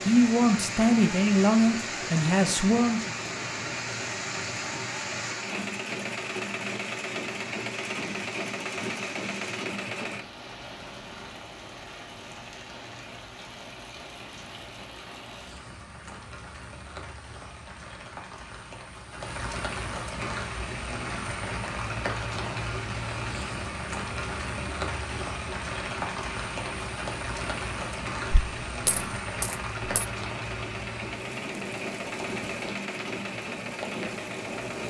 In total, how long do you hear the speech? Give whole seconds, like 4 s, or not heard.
3 s.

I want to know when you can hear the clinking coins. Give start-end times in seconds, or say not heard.
28.3-30.1.